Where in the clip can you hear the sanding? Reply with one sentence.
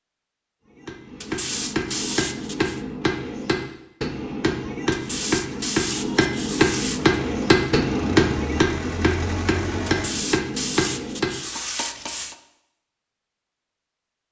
The sanding can be heard from 1.2 to 2.8 s, from 4.9 to 7.2 s and from 9.8 to 12.3 s.